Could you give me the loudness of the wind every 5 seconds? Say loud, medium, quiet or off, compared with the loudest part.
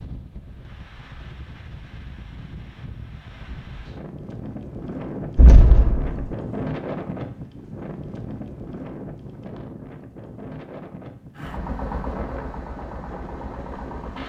medium, loud, medium.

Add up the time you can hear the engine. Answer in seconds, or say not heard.
3 s.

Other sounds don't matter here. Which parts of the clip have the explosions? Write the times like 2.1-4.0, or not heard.
5.3-6.3.